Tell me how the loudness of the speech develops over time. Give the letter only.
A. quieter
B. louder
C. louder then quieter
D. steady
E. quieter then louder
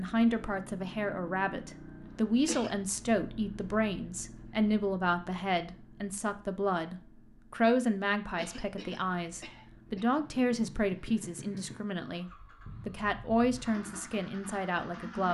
D.